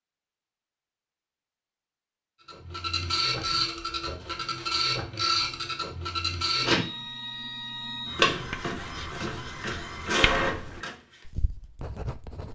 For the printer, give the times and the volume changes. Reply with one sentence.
You can hear the printer from 2.5 to 10.9 s, at a steady volume.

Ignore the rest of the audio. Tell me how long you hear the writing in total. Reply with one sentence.
The writing can be heard for 4 seconds in total.